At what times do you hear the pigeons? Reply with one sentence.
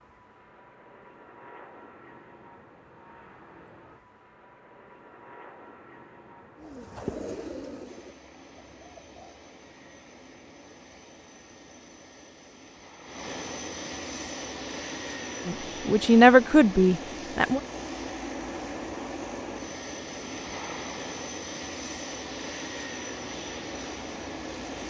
The pigeons can be heard from 6.5 to 9.3 s.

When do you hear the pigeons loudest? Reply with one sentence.
The loudest moment of the pigeons is at 7 seconds.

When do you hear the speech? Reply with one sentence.
The speech can be heard from 15.4 to 17.6 s.